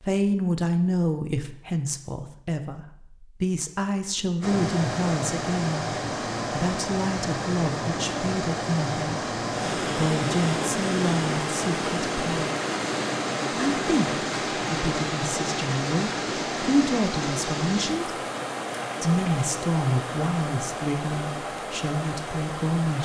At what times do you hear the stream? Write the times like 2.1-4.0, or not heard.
4.4-23.0.